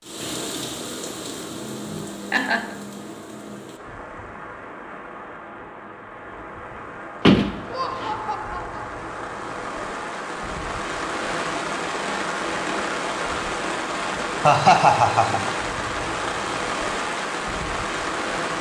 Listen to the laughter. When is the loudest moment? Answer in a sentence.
The volume of the laughter peaks at 15 seconds.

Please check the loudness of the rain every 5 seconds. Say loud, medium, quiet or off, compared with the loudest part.
medium, medium, loud, loud.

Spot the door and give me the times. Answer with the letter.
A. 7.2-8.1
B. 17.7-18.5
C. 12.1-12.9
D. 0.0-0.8
A.